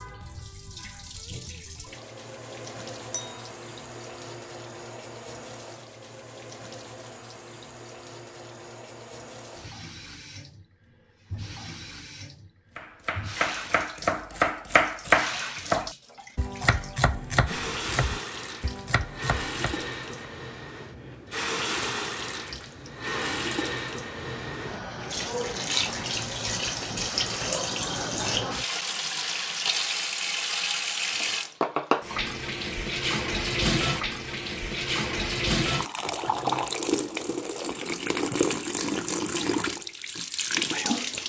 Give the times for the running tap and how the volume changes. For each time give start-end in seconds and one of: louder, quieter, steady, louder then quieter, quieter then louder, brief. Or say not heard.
0.0-41.2 louder.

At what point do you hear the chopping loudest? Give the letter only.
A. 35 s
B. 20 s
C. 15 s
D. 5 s
C.